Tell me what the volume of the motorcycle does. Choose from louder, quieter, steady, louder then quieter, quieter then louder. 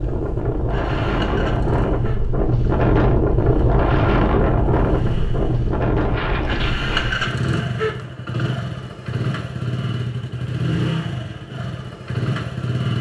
louder.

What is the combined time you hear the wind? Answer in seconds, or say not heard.
7 s.